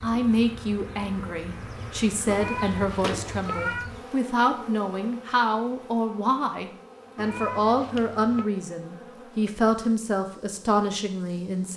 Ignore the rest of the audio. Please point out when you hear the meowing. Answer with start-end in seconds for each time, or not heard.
2.2-3.9, 7.2-8.5.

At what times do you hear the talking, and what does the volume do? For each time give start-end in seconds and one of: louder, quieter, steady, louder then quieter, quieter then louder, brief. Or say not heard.
0.0-11.7 steady.